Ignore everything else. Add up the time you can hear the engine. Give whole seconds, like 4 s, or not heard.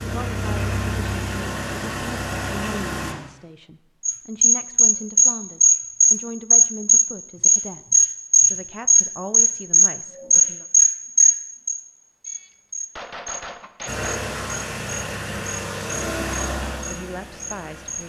7 s.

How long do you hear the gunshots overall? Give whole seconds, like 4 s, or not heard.
2 s.